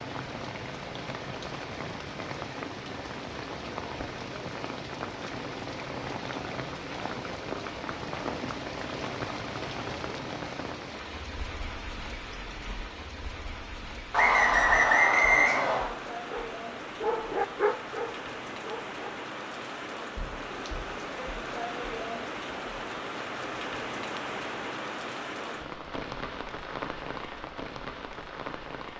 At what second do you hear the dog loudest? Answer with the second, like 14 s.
18 s.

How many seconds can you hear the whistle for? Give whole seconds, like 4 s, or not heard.
2 s.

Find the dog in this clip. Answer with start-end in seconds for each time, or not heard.
16.3-19.1.